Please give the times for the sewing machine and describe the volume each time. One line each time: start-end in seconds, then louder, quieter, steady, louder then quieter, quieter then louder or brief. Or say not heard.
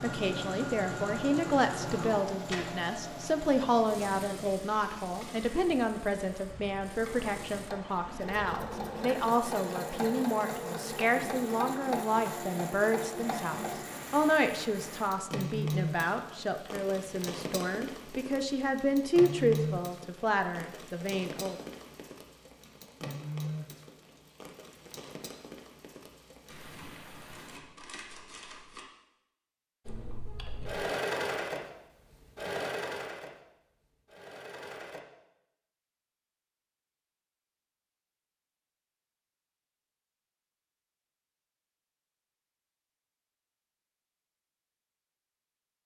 0.0-13.8 quieter then louder
29.9-35.0 quieter.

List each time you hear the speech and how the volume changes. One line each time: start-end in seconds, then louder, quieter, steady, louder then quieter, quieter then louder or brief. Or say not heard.
0.0-21.6 steady.